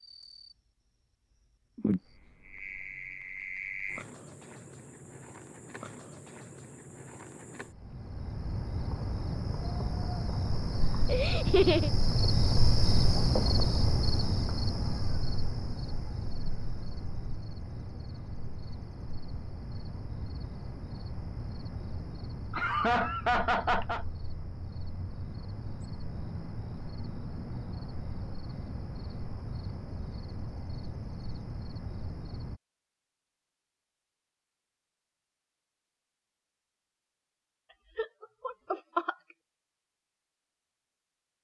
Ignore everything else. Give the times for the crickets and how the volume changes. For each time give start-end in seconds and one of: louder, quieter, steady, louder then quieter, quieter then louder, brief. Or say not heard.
0.0-32.6 louder then quieter.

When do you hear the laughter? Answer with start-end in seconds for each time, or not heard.
11.1-11.9, 22.5-24.1, 38.0-39.1.